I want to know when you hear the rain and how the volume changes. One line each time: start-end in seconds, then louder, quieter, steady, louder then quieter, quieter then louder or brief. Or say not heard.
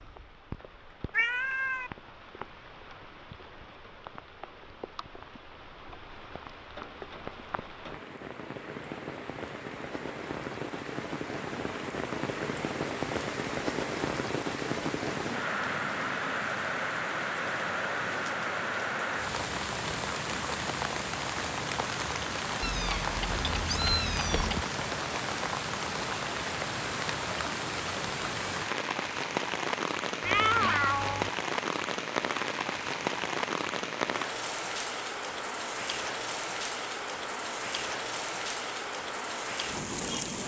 0.0-40.4 louder.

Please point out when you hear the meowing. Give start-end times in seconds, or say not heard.
1.1-1.9, 22.6-24.6, 30.2-31.3.